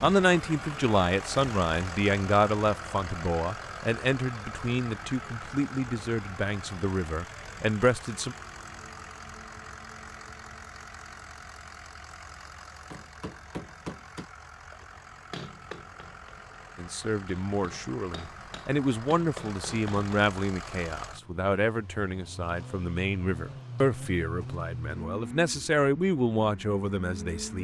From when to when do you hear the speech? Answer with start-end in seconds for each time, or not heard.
0.0-8.3, 16.8-27.5.